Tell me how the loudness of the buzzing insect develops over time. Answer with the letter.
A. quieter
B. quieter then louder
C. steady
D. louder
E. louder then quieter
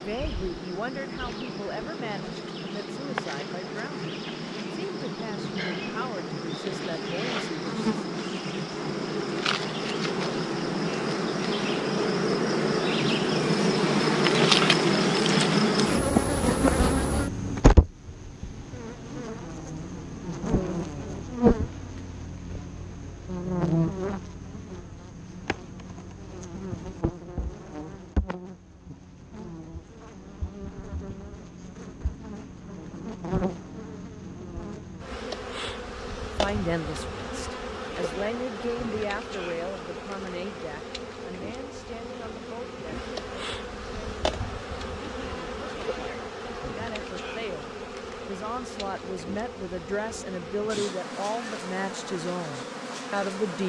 E.